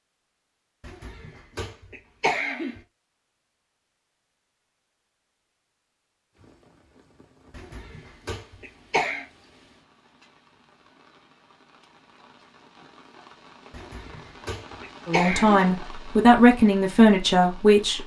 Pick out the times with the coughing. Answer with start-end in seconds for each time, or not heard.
0.8-2.8, 7.5-9.2, 13.7-15.6.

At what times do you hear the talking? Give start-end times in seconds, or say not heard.
15.1-18.0.